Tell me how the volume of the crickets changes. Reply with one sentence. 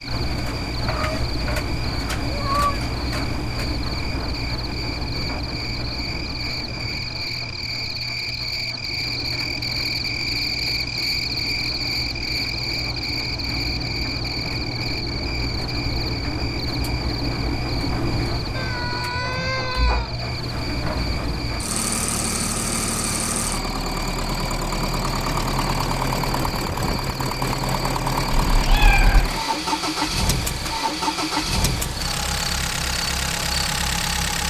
The loudness of the crickets goes up, then down.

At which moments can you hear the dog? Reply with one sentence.
The dog can't be heard in this clip.